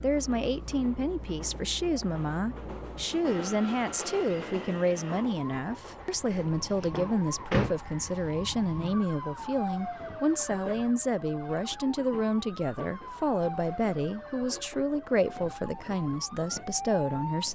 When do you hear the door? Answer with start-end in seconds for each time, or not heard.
6.3-7.8.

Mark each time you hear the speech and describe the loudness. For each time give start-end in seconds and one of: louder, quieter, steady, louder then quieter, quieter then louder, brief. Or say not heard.
0.0-17.4 steady.